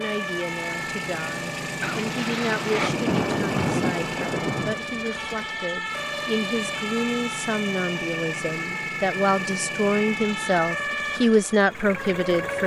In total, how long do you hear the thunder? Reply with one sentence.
The thunder can be heard for 3 seconds in total.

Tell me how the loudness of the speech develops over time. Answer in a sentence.
The volume of the speech goes up.